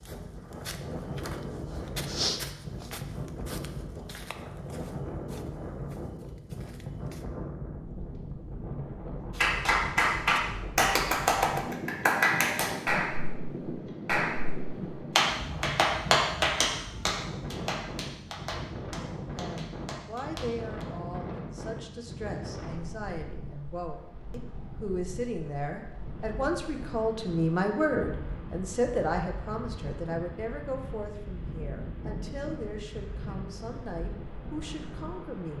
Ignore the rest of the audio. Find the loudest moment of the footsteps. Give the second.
2 s.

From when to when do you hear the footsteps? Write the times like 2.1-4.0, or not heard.
0.0-7.2.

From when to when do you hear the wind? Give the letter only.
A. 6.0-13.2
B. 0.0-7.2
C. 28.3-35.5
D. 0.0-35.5
D.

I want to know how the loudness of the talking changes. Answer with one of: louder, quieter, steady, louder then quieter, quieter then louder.
louder then quieter.